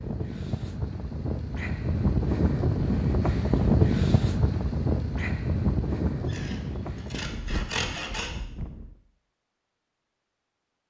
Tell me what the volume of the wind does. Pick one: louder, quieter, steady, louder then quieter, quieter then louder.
louder then quieter.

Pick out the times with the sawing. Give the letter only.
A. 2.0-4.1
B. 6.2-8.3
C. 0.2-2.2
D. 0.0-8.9
B.